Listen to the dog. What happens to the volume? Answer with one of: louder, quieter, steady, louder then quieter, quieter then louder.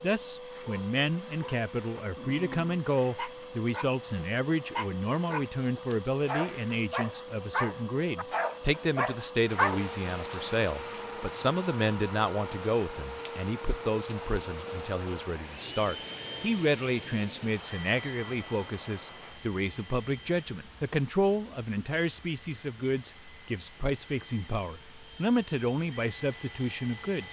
louder.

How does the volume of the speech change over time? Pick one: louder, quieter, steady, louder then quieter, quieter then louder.
steady.